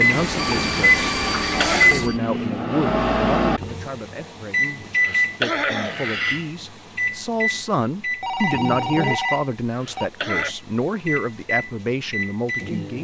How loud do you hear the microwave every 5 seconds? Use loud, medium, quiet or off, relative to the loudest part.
loud, medium, medium.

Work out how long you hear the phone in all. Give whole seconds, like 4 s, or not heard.
4 s.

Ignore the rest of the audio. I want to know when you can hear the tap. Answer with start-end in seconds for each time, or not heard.
0.0-2.1.